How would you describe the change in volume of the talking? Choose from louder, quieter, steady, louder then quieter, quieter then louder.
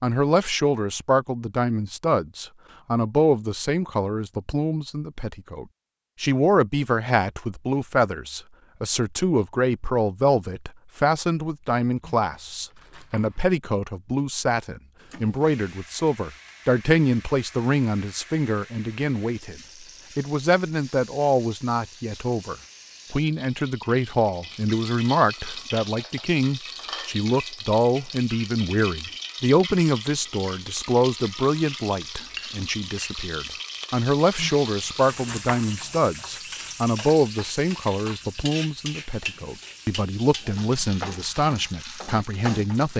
steady.